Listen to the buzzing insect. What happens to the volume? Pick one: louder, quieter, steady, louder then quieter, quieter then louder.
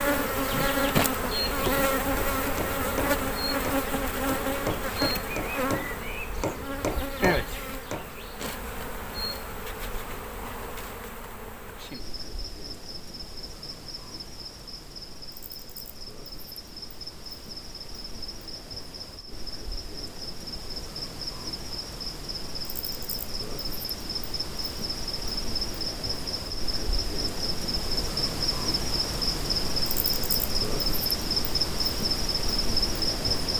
quieter then louder.